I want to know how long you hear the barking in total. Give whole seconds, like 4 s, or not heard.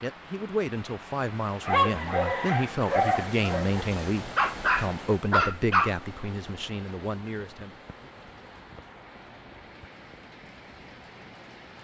4 s.